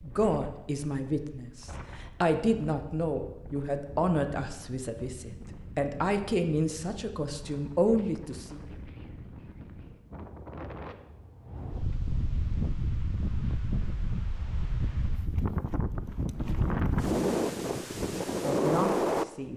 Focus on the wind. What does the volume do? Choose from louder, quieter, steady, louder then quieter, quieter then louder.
louder.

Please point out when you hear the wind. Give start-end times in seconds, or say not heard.
0.0-19.5.